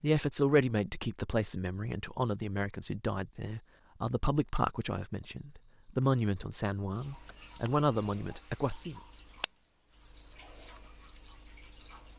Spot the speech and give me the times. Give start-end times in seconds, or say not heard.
0.0-9.0.